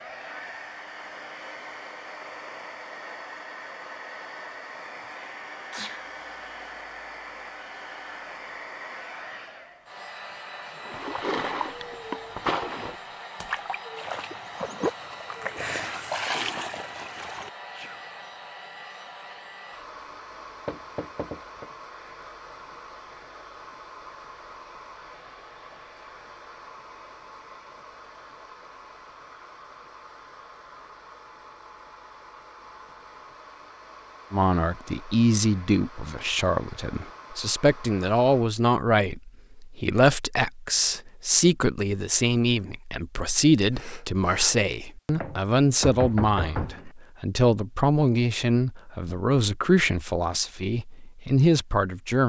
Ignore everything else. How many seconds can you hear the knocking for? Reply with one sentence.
You can hear the knocking for 4 seconds altogether.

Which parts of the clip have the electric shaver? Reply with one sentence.
The electric shaver can't be heard in this clip.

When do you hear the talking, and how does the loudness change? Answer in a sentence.
The talking can be heard from 34.3 to 52.2 s, at a steady volume.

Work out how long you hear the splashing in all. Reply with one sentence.
You can hear the splashing for 7 seconds altogether.